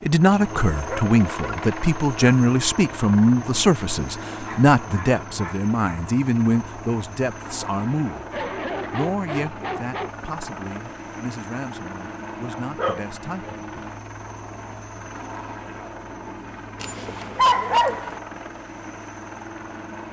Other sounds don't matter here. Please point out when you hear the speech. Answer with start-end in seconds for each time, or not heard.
0.0-13.6.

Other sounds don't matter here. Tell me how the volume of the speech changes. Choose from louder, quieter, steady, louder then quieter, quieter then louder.
quieter.